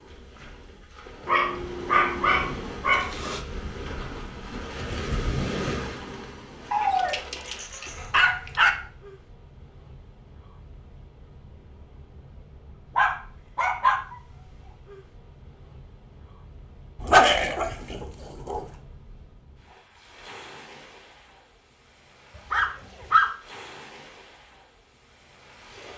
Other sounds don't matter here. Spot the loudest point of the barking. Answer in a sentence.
The loudest moment of the barking is at 17 seconds.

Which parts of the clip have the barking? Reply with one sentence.
The barking can be heard from 1.2 to 3.4 s, from 6.7 to 8.7 s, from 12.9 to 14.0 s, from 16.9 to 18.6 s and from 22.5 to 23.3 s.